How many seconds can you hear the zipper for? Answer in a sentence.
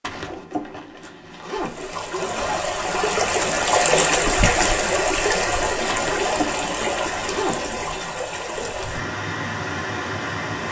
You can hear the zipper for 5 seconds altogether.